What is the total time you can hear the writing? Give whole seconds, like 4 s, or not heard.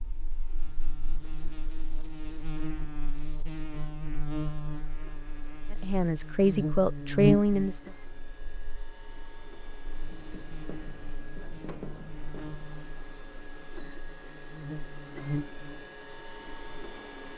3 s.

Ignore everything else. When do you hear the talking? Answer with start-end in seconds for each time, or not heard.
5.7-7.9.